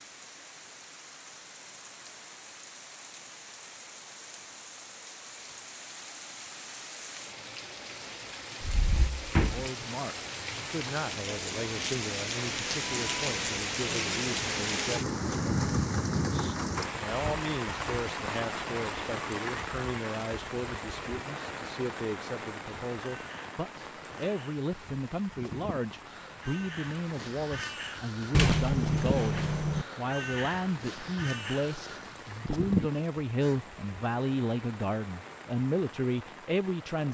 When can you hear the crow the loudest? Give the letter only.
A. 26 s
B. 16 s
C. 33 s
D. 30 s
C.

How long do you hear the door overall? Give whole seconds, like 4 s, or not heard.
3 s.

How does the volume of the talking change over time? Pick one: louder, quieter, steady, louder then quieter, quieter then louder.
louder.